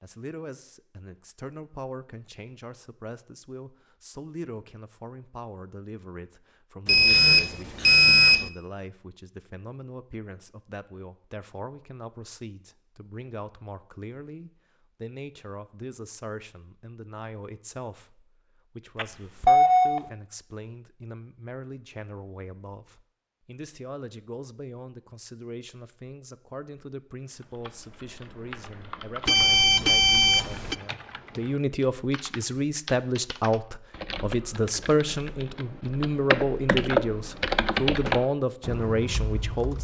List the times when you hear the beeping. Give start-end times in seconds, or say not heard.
6.8-8.5, 18.9-20.0, 29.2-30.8.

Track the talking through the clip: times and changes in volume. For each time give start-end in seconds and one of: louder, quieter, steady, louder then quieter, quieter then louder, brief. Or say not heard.
0.0-39.8 louder.